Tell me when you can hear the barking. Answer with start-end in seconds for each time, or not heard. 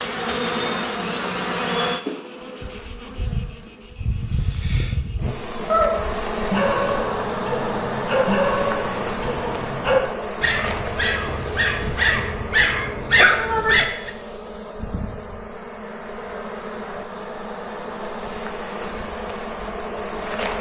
5.7-14.1.